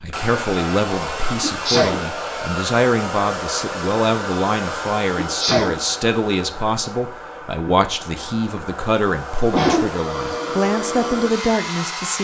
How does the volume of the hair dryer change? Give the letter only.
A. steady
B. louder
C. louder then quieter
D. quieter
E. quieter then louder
E.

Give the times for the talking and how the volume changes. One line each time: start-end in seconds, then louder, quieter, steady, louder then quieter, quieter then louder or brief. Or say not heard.
0.0-12.1 steady.